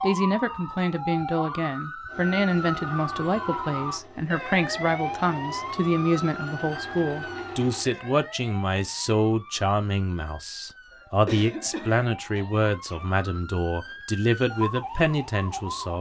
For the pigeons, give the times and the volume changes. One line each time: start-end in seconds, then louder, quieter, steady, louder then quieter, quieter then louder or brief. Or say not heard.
not heard.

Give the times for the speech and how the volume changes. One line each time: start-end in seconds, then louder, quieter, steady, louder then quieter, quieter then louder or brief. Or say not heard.
0.0-15.9 steady.